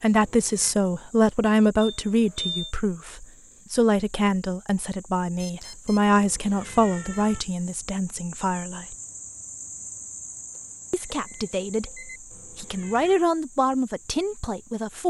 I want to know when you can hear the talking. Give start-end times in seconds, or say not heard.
0.0-8.9, 10.9-15.0.